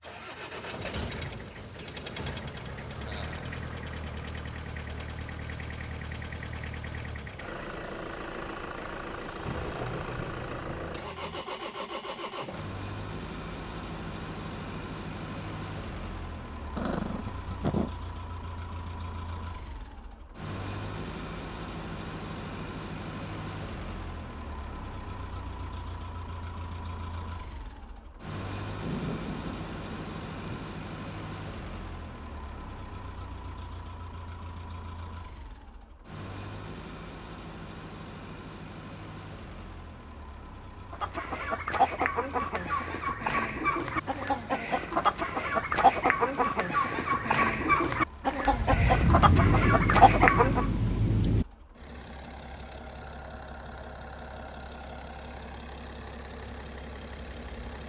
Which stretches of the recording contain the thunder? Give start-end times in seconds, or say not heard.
9.4-11.4, 28.8-30.7, 48.5-51.5.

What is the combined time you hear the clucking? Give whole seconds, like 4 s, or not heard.
10 s.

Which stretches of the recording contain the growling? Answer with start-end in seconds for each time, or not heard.
16.8-17.9.